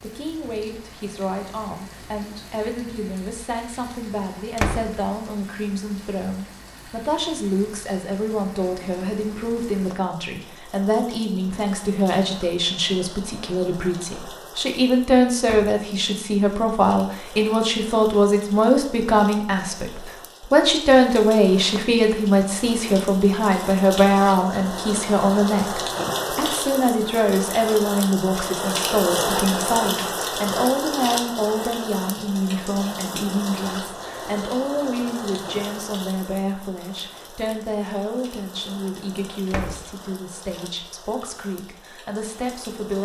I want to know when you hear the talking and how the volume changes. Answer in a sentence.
You can hear the talking from 0.0 to 43.0 s, getting louder then quieter.